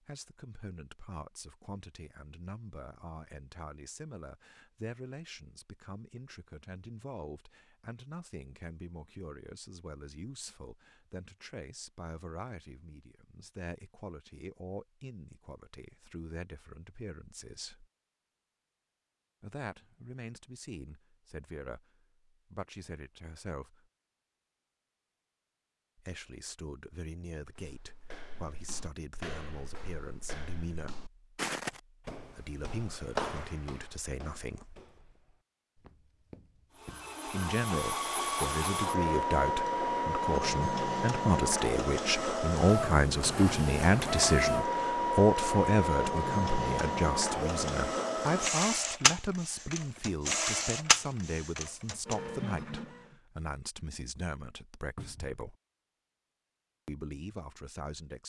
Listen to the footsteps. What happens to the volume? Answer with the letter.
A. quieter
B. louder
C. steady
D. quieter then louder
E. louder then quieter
E.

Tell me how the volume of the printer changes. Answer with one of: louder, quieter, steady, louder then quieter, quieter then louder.
steady.